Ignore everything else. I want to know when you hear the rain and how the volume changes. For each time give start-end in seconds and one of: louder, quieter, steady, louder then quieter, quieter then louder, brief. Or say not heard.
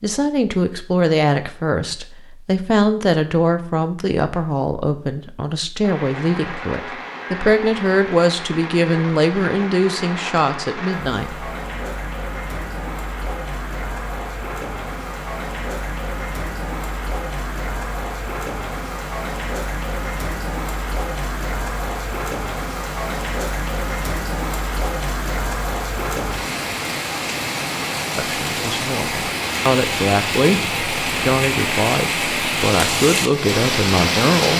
5.8-34.5 louder.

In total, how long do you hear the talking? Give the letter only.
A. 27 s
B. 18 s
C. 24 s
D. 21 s
B.